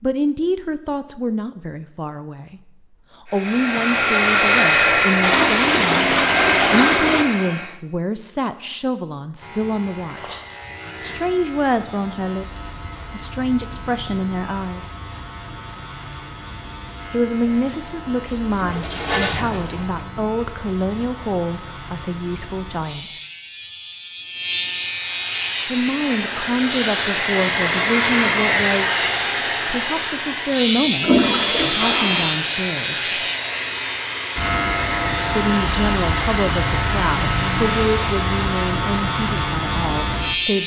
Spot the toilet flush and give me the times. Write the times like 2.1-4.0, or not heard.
5.2-7.2, 17.4-20.1, 31.0-32.3.